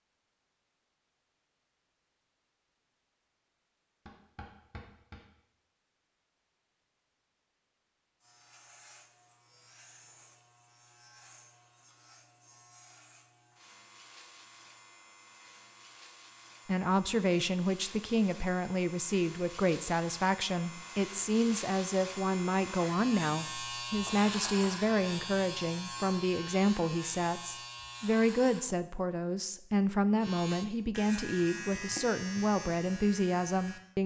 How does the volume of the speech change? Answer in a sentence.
The volume of the speech stays about the same.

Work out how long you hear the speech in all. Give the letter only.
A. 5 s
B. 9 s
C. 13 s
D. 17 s
D.